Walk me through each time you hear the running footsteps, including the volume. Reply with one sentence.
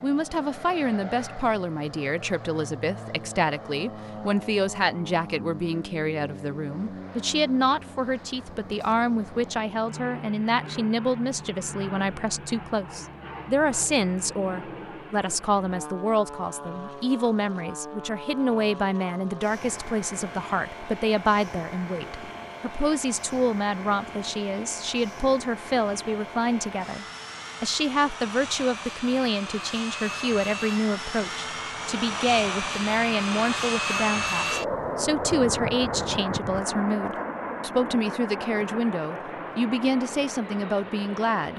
The running footsteps can't be heard in this clip.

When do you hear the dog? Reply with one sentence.
You can't hear the dog here.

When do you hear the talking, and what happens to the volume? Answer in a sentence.
The talking can be heard from 0.0 to 41.5 s, at a steady volume.